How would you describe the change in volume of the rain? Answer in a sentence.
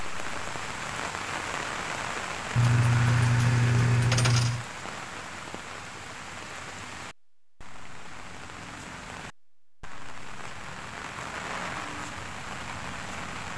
The volume of the rain goes down, then up.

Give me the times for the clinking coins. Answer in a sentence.
You can hear the clinking coins from 2.5 to 4.7 s.